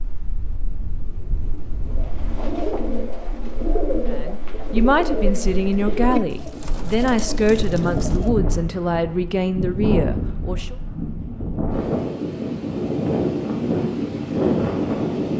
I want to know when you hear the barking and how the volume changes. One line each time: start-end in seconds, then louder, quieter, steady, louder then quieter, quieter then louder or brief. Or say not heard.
not heard.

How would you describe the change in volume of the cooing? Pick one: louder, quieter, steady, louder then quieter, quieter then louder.
steady.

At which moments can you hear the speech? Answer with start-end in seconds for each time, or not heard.
4.0-10.8.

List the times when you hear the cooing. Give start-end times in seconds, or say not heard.
1.9-8.3.